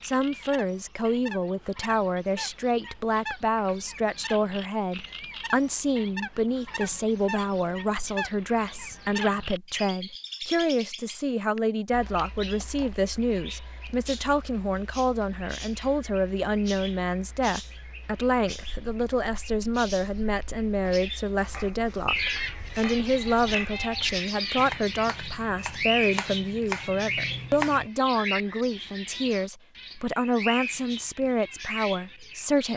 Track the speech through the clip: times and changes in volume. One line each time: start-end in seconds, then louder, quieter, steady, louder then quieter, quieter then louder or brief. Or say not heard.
0.0-32.7 steady.